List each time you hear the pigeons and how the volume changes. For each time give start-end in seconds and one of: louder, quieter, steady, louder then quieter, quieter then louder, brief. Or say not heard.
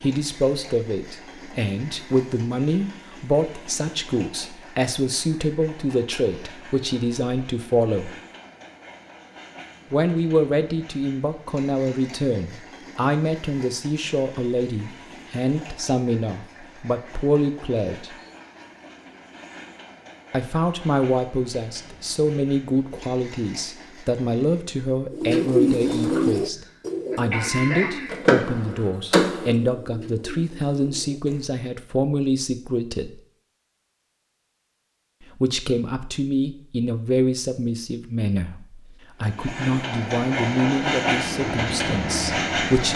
25.1-31.5 quieter.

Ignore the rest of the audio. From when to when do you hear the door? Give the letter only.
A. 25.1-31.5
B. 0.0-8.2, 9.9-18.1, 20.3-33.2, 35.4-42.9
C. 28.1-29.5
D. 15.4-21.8
C.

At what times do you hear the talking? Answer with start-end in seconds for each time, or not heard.
0.0-8.2, 9.9-18.1, 20.3-33.2, 35.4-42.9.